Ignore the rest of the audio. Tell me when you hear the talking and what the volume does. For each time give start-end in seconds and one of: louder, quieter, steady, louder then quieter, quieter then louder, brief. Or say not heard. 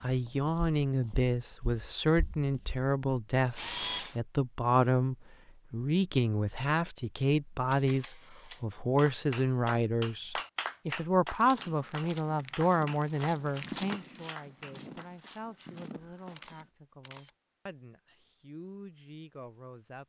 0.0-20.0 quieter.